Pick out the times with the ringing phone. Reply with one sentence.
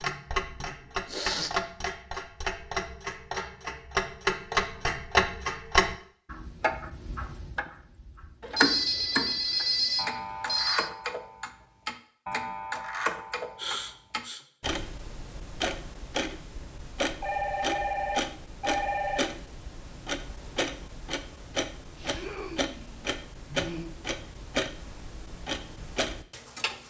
The ringing phone can be heard from 8.4 to 10.9 s and from 17.2 to 19.2 s.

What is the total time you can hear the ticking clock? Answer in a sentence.
You can hear the ticking clock for 27 seconds altogether.